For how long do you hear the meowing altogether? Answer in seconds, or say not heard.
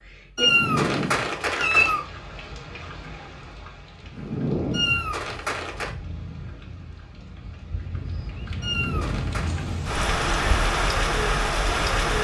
4 s.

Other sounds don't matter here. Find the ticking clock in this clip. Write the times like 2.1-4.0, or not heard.
not heard.